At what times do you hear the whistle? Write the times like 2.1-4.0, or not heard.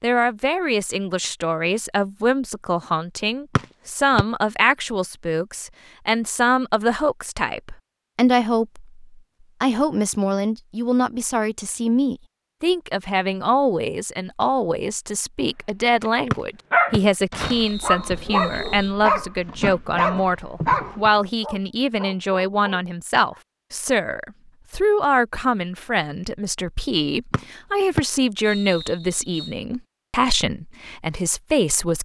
3.5-4.2, 16.3-18.9, 27.3-29.5.